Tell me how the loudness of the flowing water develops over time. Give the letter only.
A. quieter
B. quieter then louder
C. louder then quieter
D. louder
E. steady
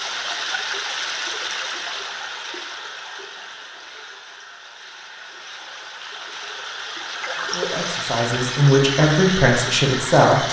B.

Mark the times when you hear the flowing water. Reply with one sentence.
The flowing water can be heard from 0.0 to 10.4 s.